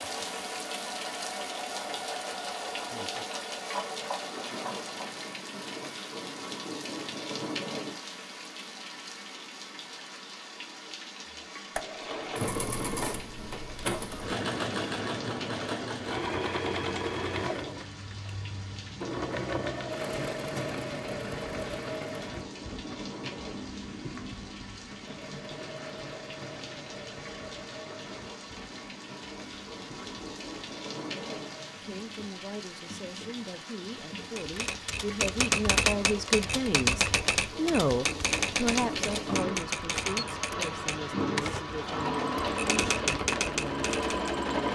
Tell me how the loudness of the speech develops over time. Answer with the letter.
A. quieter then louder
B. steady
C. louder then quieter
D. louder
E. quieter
C.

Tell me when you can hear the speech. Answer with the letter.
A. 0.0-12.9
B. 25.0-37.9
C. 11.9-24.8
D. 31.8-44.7
D.